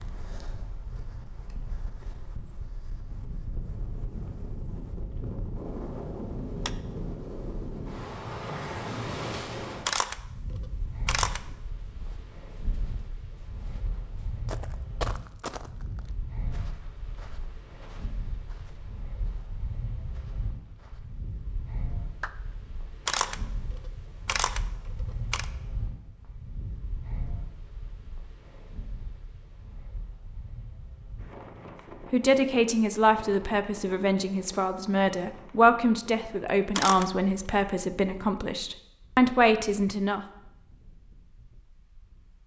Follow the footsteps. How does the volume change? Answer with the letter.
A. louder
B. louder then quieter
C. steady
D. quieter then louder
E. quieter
B.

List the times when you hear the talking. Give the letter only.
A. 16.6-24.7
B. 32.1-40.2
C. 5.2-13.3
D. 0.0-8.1
B.